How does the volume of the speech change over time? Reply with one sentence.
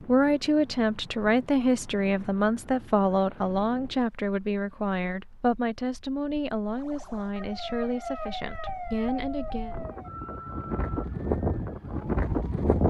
The loudness of the speech goes down.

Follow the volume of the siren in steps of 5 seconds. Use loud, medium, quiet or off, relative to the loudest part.
off, loud, medium.